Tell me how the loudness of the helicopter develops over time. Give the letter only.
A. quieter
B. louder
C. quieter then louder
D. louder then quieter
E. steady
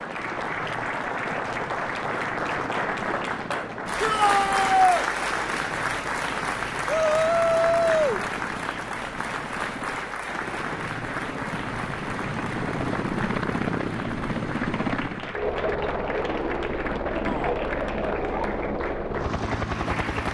B.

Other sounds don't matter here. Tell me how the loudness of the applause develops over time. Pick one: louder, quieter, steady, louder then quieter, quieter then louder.
quieter.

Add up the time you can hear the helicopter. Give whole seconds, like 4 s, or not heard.
20 s.